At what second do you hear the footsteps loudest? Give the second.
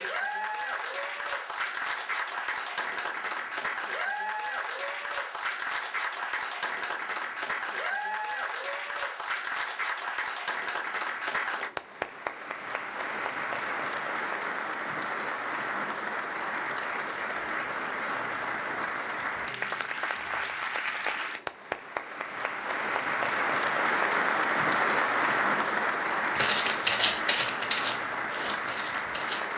27 s.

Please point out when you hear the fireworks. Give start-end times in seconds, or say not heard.
not heard.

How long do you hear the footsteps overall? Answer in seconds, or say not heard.
3 s.